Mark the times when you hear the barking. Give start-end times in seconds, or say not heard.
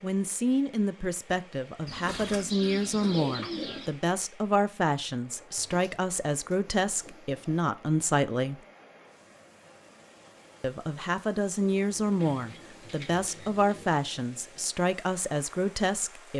not heard.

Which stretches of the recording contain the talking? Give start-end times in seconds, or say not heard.
0.0-8.6, 10.6-16.3.